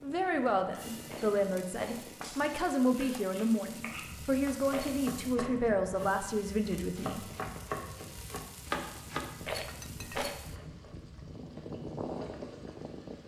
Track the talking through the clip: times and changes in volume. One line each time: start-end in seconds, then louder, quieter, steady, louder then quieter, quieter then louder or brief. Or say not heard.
0.0-7.2 steady.